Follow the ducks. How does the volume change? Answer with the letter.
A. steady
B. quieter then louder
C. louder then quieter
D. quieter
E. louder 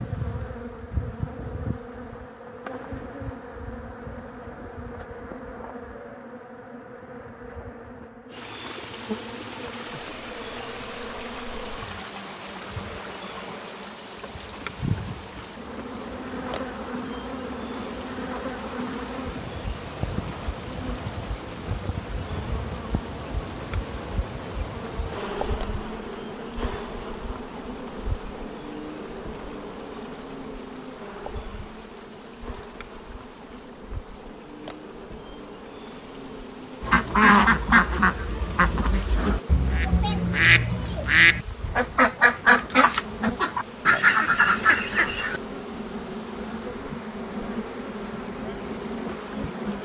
B.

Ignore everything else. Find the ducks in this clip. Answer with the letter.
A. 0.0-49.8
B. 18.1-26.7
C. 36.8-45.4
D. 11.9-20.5
C.